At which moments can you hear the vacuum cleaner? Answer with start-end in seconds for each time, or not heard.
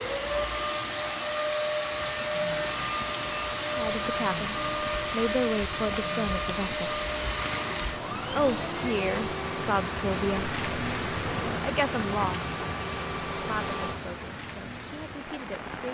0.0-14.0.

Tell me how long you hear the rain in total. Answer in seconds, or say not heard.
16 s.